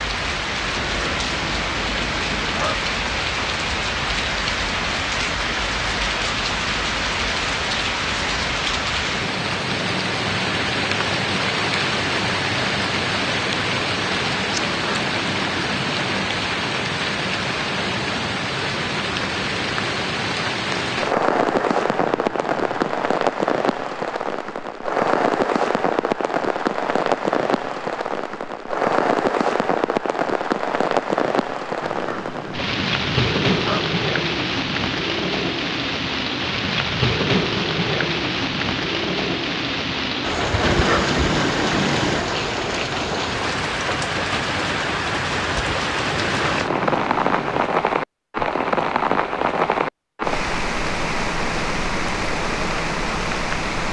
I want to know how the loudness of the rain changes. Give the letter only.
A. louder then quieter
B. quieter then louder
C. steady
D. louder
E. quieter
C.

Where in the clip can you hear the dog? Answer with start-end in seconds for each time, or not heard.
0.8-2.8, 14.6-16.1, 21.3-23.1, 31.8-33.9, 40.6-42.2, 46.1-47.7.